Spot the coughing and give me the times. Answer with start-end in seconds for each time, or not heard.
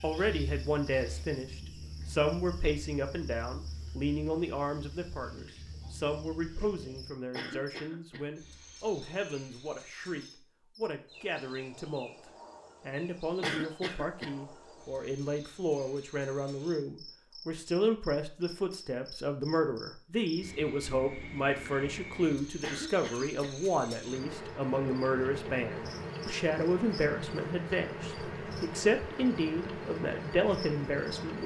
7.3-8.2, 13.4-14.3, 22.6-23.5.